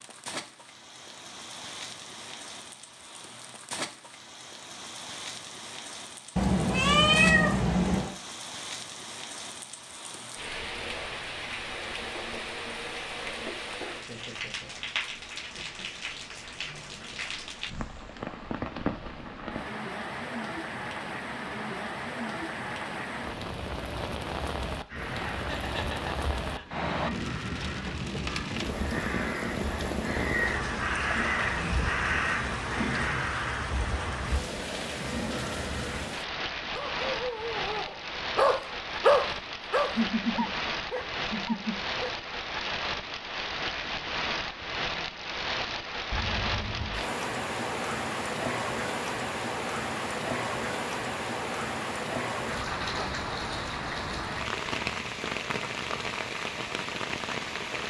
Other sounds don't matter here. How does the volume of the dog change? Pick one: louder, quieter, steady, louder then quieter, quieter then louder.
louder then quieter.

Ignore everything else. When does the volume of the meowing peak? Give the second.
7 s.